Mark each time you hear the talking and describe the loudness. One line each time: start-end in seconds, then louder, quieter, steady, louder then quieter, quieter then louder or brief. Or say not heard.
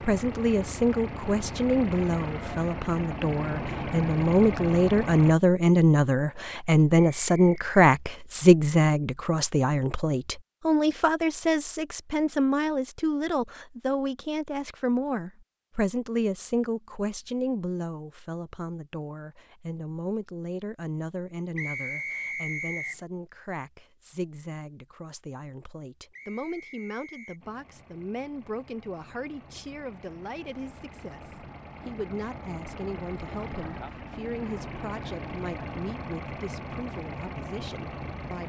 0.0-38.4 quieter.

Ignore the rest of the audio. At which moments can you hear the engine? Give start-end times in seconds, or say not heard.
0.0-5.3, 27.4-38.4.